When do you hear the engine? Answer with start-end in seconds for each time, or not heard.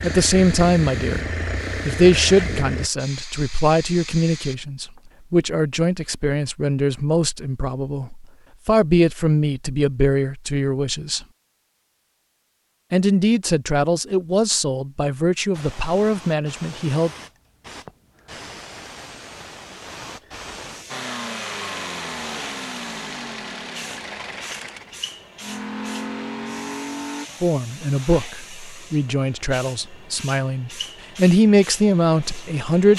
0.0-2.9, 20.9-27.3.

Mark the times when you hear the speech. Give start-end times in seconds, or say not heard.
0.0-1.2, 1.9-11.2, 12.9-17.1, 27.4-32.9.